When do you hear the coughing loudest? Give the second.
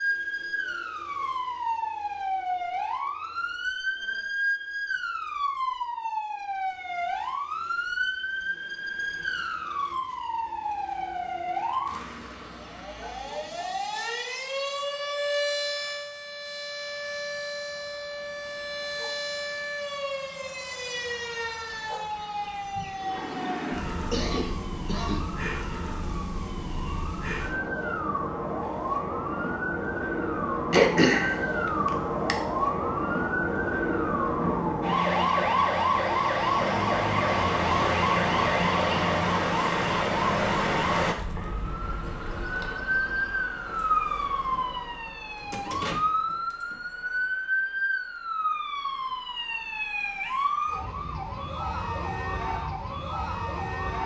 31 s.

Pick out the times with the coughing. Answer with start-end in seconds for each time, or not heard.
24.1-25.2, 30.7-32.4.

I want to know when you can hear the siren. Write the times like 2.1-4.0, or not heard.
0.0-54.0.